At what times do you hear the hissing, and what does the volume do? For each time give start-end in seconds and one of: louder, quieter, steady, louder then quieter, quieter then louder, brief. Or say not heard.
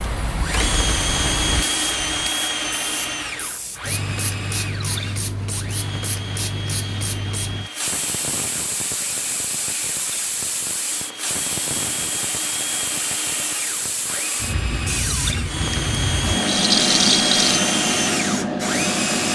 0.0-19.3 louder.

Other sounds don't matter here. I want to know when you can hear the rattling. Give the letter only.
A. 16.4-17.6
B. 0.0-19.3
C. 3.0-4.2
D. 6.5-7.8
A.